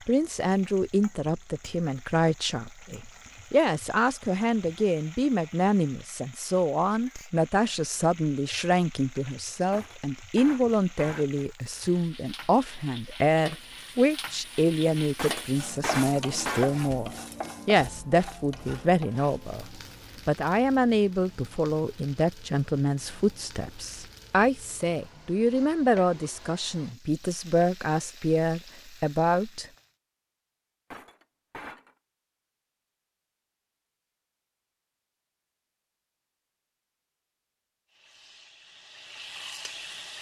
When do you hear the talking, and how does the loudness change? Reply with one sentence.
You can hear the talking from 0.1 to 29.6 s, at a steady volume.